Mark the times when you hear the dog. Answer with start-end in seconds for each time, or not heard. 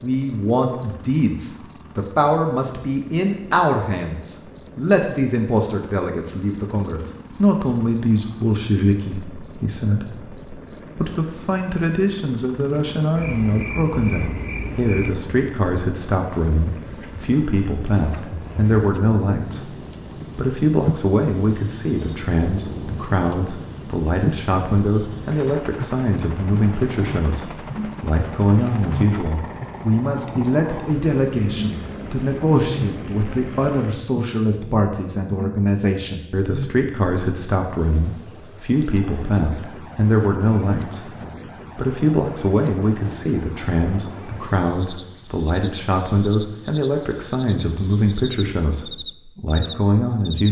not heard.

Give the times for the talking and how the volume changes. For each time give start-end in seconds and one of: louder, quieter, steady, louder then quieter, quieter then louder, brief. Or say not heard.
0.0-41.1 steady
41.8-50.4 steady.